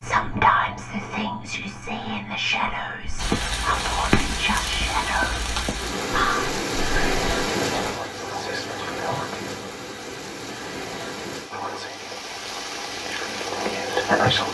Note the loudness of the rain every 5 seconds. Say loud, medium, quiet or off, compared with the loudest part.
loud, loud, medium.